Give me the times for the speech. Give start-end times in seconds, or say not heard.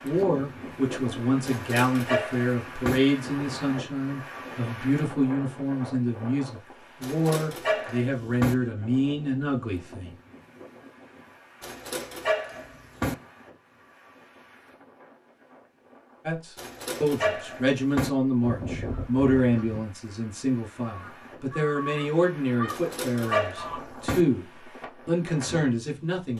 0.0-10.2, 16.2-26.3.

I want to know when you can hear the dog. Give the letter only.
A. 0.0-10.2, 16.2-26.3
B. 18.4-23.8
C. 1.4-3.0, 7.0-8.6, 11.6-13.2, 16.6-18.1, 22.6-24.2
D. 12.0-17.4
C.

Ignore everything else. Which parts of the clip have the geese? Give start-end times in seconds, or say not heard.
18.4-23.8.